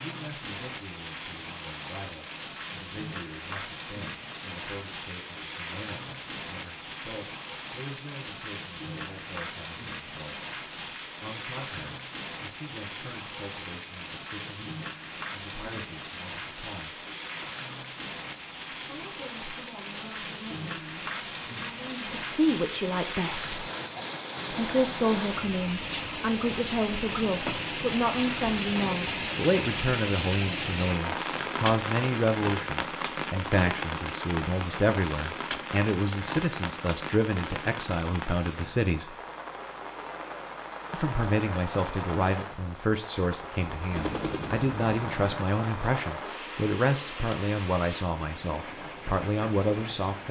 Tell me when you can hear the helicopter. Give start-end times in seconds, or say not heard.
43.6-45.4.